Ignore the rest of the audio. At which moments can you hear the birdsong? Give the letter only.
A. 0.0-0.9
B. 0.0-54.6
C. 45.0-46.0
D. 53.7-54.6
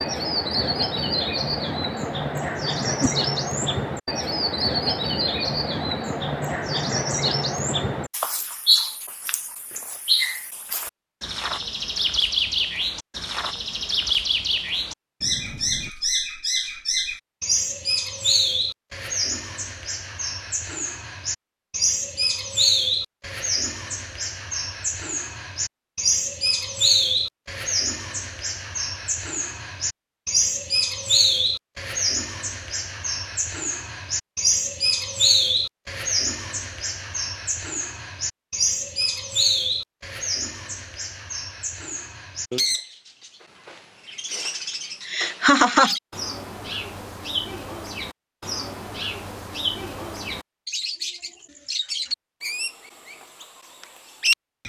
B.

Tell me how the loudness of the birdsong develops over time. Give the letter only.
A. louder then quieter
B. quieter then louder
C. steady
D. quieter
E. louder
D.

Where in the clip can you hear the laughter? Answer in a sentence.
You can hear the laughter from 45.0 to 46.0 s.